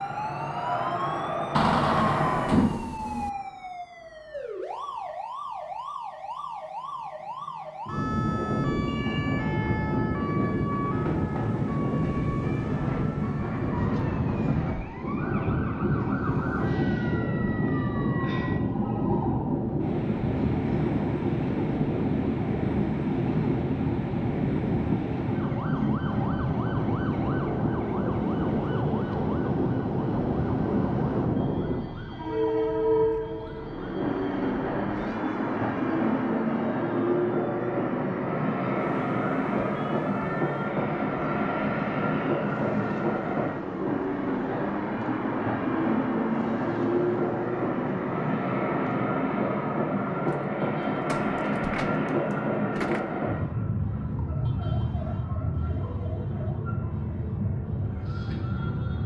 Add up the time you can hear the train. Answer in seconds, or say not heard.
59 s.